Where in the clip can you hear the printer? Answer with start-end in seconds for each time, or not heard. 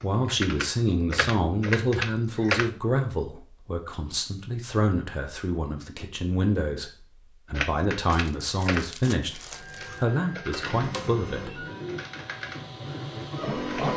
9.2-13.9.